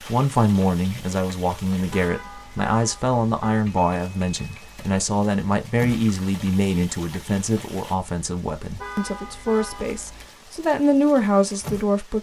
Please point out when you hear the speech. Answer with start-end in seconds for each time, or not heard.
0.1-12.1.